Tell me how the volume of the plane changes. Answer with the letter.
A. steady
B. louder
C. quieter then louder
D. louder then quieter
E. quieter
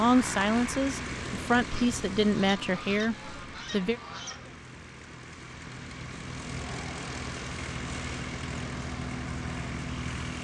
C.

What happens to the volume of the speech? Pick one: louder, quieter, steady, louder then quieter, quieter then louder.
steady.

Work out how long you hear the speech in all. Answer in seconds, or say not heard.
4 s.